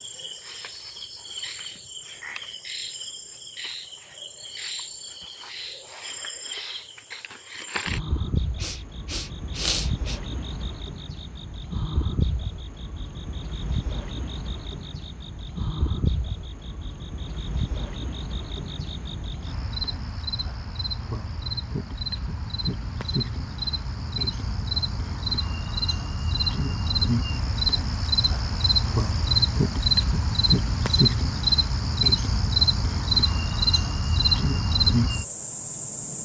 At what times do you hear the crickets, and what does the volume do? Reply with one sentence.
The crickets can be heard from 0.0 to 36.2 s, getting louder.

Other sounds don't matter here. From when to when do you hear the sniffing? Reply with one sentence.
The sniffing can be heard from 8.6 to 10.2 s.